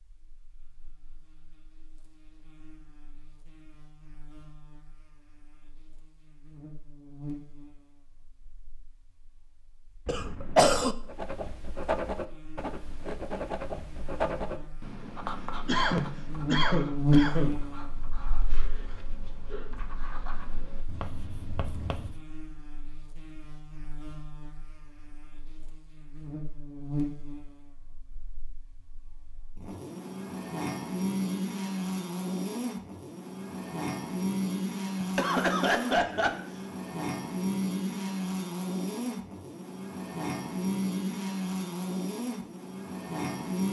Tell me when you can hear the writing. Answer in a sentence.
You can hear the writing from 11.1 to 22.2 s.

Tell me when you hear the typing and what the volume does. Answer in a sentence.
You can't hear the typing here.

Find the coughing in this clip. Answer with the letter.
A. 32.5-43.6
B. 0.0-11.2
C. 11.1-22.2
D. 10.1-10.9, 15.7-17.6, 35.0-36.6
D.